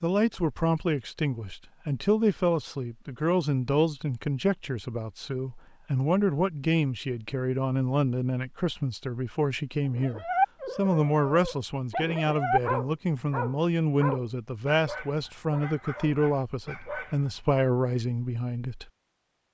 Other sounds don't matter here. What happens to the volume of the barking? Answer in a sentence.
The volume of the barking goes down.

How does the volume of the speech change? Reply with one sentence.
The volume of the speech stays about the same.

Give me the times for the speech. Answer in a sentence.
You can hear the speech from 0.0 to 18.9 s.